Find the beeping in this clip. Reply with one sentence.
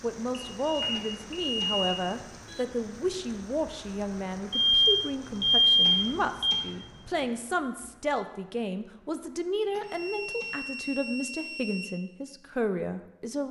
You can hear the beeping from 0.3 to 1.9 s, from 4.5 to 6.5 s and from 9.8 to 11.9 s.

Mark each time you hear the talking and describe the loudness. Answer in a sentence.
The talking can be heard from 0.0 to 13.4 s, at a steady volume.